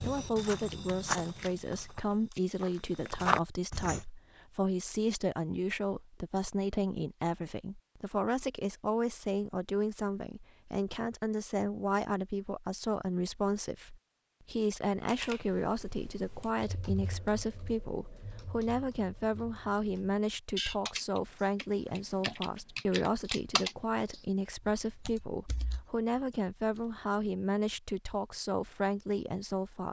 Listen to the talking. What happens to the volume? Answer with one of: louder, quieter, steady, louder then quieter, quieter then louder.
steady.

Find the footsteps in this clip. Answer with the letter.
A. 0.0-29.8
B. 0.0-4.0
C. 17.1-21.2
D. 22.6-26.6
B.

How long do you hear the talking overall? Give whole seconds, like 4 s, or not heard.
30 s.